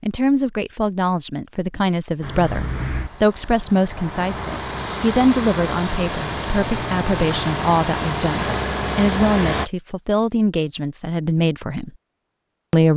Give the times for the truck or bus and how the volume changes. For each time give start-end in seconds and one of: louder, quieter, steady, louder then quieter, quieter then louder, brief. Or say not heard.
2.2-9.7 louder.